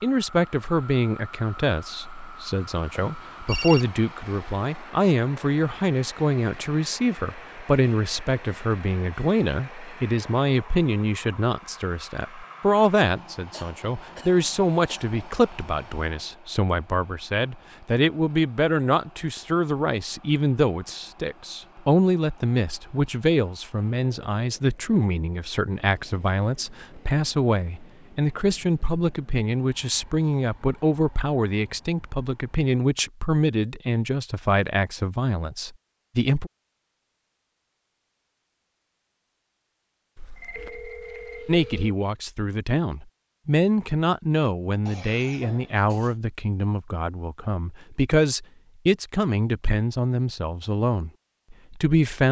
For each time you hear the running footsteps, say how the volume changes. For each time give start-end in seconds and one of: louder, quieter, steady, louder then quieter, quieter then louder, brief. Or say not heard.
not heard.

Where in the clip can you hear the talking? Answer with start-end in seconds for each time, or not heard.
0.0-36.5, 41.5-52.2.